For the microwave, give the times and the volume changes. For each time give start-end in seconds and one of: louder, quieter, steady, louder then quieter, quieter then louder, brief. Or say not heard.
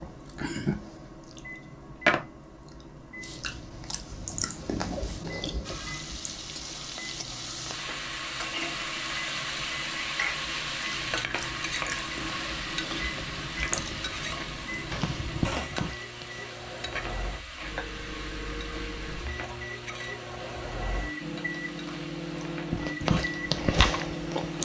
0.0-24.6 louder.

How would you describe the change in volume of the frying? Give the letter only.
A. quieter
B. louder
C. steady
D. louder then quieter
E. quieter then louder
A.